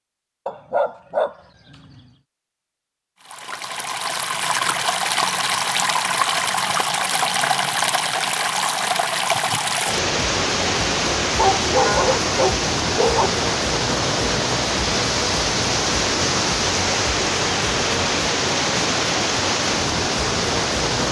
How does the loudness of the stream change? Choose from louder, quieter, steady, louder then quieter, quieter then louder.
steady.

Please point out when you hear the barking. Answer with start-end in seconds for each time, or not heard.
0.5-2.0, 11.3-13.3.